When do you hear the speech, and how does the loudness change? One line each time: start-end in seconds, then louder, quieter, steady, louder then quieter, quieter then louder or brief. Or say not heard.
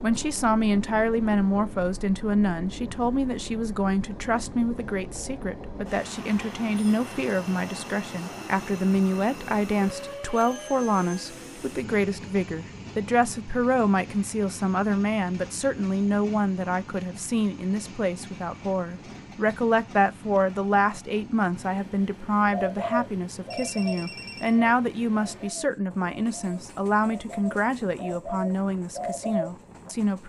0.0-30.2 steady.